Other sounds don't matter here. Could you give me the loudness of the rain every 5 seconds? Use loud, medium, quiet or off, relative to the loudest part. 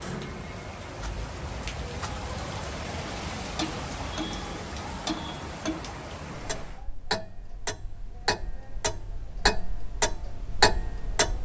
loud, loud, off.